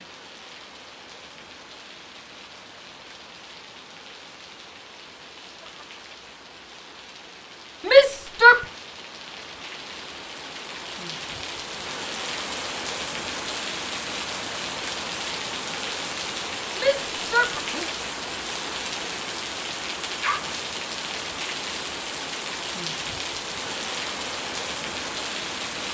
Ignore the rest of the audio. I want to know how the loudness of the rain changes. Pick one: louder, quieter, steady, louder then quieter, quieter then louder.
louder.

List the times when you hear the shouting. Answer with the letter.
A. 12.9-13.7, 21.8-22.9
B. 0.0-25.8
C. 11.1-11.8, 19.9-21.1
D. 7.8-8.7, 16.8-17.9
D.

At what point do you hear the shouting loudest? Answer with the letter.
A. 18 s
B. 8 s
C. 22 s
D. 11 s
B.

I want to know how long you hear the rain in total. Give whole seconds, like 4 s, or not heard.
26 s.